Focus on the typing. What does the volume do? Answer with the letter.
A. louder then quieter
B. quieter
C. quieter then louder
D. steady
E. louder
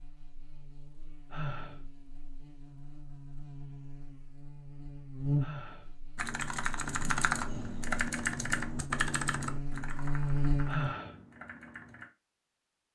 B.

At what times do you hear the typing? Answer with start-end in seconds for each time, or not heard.
6.2-12.1.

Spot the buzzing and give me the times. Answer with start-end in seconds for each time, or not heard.
0.0-10.9.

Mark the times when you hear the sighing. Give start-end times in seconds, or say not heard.
1.3-1.8, 5.3-5.9, 10.7-11.2.